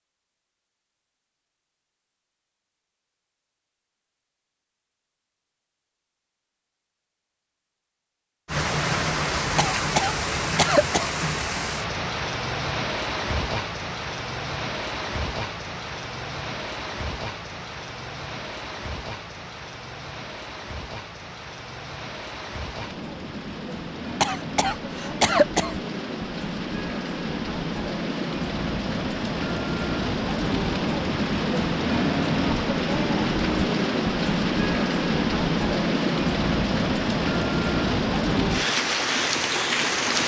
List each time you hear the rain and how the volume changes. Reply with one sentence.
The rain can be heard from 8.4 to 40.2 s, getting quieter then louder.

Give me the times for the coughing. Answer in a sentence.
You can hear the coughing from 9.6 to 11.1 s and from 24.2 to 25.8 s.